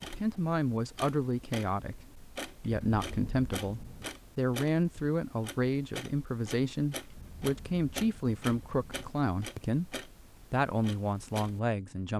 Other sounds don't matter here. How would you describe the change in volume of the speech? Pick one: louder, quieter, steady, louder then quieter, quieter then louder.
steady.